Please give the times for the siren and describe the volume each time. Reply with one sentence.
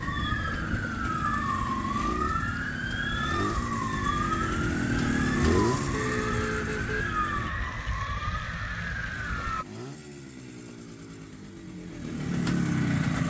You can hear the siren from 0.0 to 9.7 s, at a steady volume.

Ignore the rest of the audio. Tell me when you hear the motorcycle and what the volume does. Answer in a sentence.
You can hear the motorcycle from 0.0 to 7.5 s, getting louder then quieter; and from 9.1 to 13.2 s, getting louder.